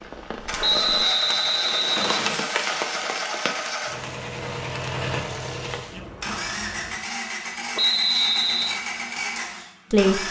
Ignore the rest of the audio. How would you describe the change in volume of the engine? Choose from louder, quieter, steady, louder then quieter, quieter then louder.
steady.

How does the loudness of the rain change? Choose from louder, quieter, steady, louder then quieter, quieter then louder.
louder then quieter.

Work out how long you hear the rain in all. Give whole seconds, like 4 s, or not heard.
7 s.